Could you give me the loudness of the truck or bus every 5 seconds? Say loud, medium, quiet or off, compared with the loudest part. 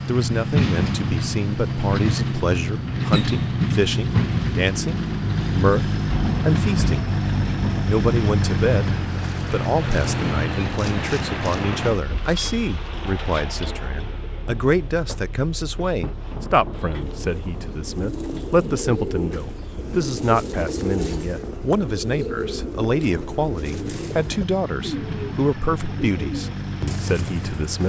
loud, loud, medium, quiet, quiet, medium.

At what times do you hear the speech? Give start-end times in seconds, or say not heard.
0.1-7.1, 7.8-8.9, 9.5-27.8.